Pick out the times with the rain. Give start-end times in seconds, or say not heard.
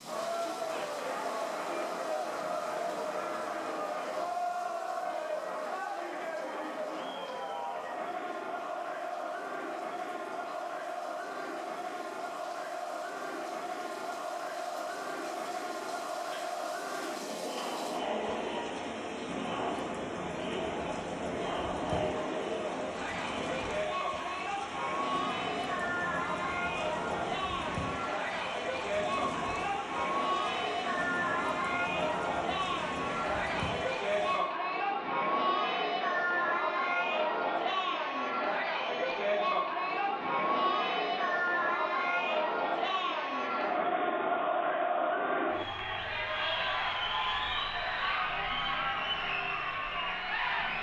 0.0-34.5.